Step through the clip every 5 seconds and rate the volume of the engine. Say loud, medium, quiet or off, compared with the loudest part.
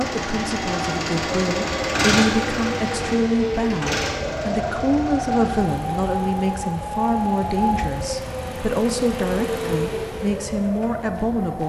loud, medium, quiet.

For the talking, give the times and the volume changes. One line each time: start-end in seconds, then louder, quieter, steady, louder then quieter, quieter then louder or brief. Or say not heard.
0.0-11.6 steady.